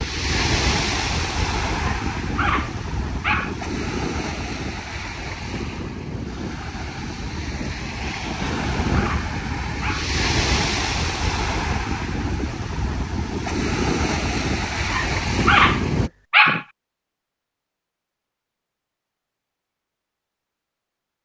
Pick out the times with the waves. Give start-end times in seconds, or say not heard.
0.0-16.1.